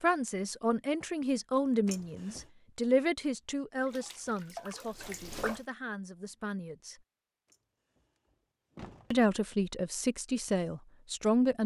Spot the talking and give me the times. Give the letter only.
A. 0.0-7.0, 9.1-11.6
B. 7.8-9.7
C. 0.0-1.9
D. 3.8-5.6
A.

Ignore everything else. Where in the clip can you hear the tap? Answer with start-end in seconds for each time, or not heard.
3.8-5.6.